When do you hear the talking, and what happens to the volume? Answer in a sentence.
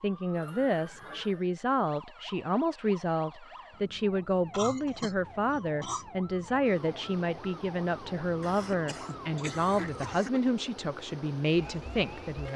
The talking can be heard from 0.0 to 12.5 s, at a steady volume.